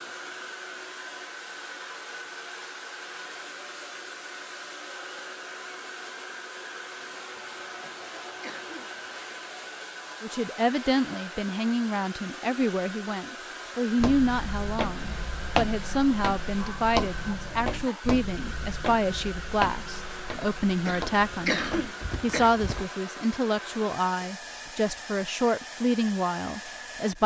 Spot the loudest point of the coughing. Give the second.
22 s.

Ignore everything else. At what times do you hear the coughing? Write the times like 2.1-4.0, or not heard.
7.3-9.3, 20.4-22.5.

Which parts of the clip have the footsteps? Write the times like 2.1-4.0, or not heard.
13.9-22.9.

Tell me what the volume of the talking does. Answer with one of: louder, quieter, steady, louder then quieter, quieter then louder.
steady.